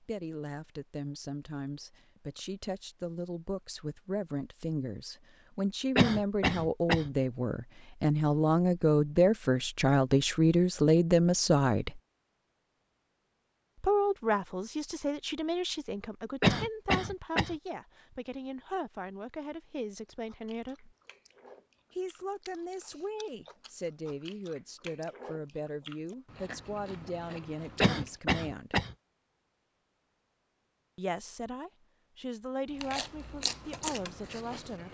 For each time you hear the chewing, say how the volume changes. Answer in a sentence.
The chewing can be heard from 20.2 to 28.2 s, getting louder; and briefly from 32.7 to 34.8 s.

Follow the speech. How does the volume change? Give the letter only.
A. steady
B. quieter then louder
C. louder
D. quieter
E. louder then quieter
E.